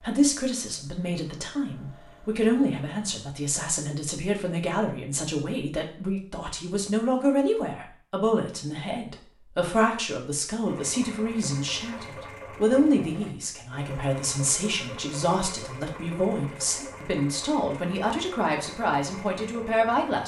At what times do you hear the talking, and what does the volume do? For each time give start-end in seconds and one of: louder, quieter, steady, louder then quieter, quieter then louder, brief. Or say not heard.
0.0-20.2 steady.